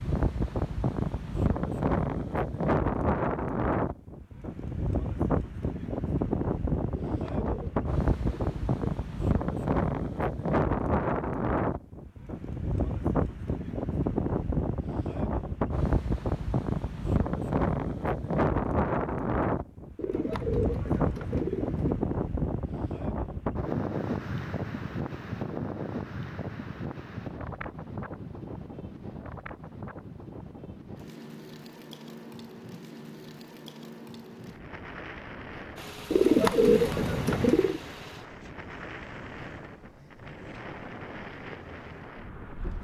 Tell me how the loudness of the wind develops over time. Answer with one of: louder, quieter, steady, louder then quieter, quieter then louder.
quieter.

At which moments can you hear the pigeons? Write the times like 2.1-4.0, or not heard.
6.9-8.8, 19.9-21.9, 36.1-37.8.